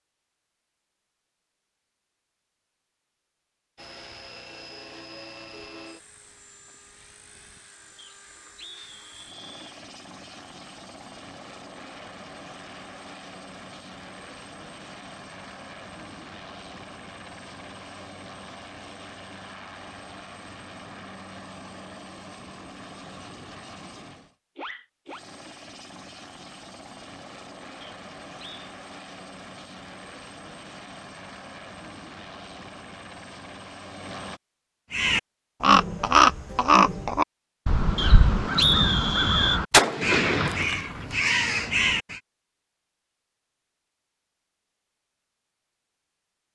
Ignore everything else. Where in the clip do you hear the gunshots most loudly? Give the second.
40 s.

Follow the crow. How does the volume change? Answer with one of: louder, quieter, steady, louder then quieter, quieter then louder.
quieter.